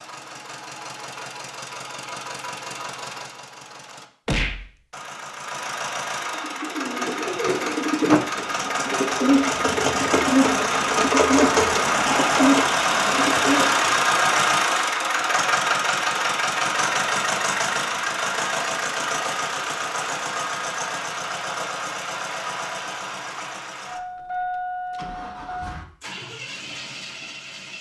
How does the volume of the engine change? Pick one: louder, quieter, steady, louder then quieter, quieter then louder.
louder then quieter.